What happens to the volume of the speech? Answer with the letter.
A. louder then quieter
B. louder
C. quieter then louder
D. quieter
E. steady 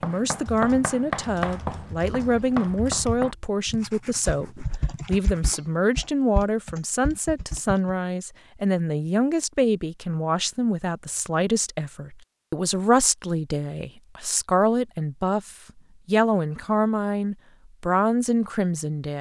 E.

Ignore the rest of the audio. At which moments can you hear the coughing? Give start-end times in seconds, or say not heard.
not heard.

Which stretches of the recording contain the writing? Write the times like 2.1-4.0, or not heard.
0.0-5.5.